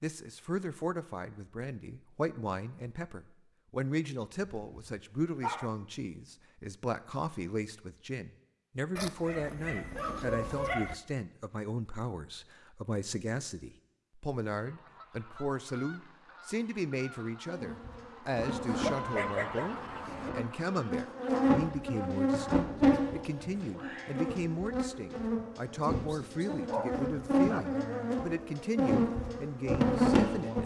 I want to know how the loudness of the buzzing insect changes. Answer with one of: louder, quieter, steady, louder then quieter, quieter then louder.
louder.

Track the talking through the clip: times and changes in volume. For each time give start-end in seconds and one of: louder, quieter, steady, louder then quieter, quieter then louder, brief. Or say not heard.
0.0-30.6 steady.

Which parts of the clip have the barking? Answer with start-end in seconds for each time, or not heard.
4.7-5.7, 8.9-10.9, 18.9-20.3, 26.6-27.8.